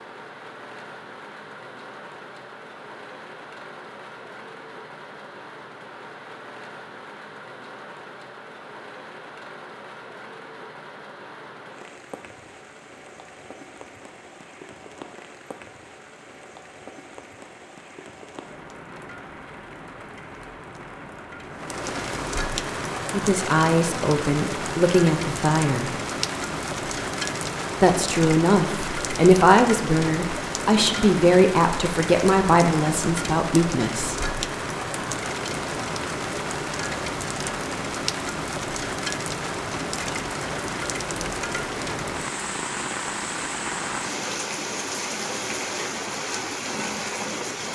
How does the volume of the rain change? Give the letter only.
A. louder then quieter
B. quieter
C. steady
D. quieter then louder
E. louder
E.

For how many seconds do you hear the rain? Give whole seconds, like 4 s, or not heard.
48 s.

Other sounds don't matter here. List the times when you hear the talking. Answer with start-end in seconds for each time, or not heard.
23.1-25.9, 27.8-34.2.